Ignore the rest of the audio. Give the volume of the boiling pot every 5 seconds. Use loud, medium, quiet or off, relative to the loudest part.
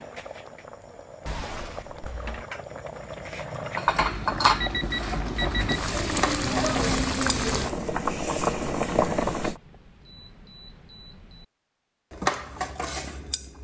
medium, loud, off.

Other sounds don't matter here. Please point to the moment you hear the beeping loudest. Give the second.
5 s.